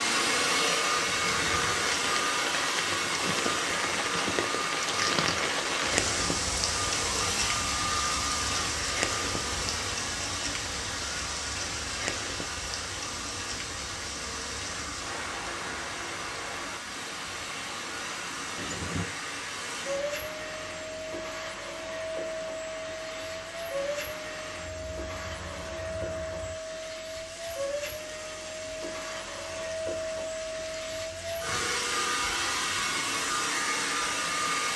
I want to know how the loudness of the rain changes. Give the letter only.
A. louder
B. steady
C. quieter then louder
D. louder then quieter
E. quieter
E.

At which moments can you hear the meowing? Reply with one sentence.
The meowing can be heard from 18.6 to 19.1 s.